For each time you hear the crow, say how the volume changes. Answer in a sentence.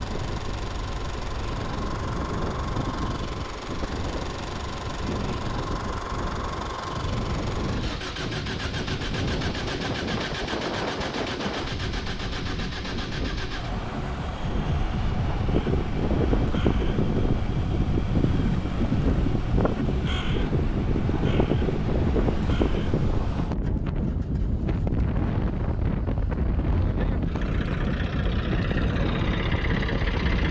The crow can be heard from 15.4 to 23.1 s, at a steady volume.